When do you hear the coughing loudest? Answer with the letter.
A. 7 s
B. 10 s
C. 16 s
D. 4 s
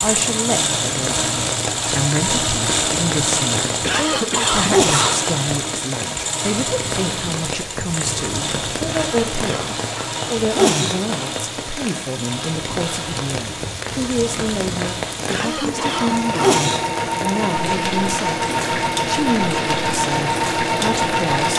D.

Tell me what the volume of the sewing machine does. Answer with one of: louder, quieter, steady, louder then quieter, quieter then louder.
quieter then louder.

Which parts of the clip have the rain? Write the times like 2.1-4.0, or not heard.
0.0-21.5.